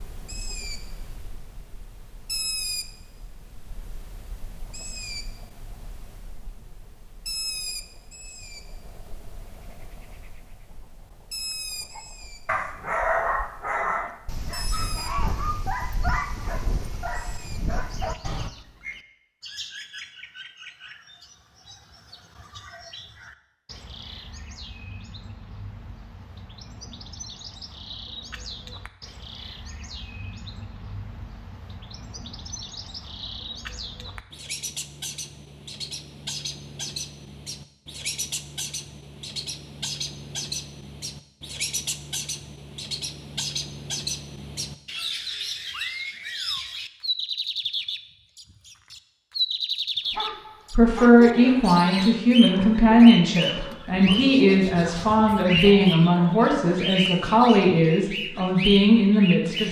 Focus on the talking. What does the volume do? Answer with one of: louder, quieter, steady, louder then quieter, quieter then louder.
steady.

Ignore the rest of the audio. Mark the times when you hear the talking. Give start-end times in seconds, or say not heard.
50.7-59.6.